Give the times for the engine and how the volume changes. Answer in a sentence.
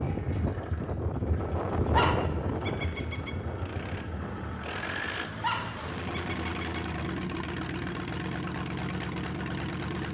The engine can be heard from 0.0 to 10.0 s, getting louder.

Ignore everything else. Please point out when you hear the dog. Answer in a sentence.
You can hear the dog from 1.9 to 3.3 s and from 5.4 to 6.8 s.